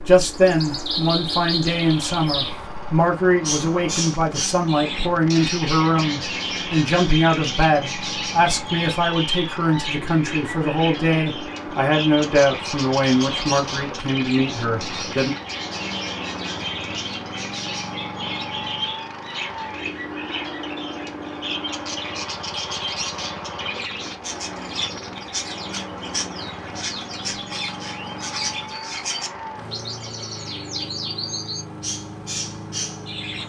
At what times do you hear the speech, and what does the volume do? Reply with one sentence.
You can hear the speech from 0.1 to 15.3 s, at a steady volume.